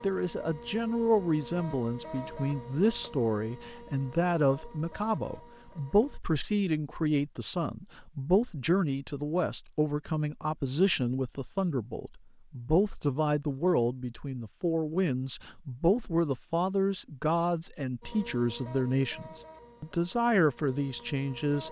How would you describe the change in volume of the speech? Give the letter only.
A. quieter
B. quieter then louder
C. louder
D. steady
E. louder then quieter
D.